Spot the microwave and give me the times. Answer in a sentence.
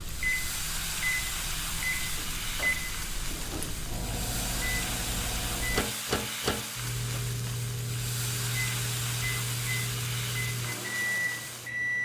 You can hear the microwave from 0.0 to 12.0 s.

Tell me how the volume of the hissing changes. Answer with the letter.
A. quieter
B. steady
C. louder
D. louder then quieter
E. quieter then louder
B.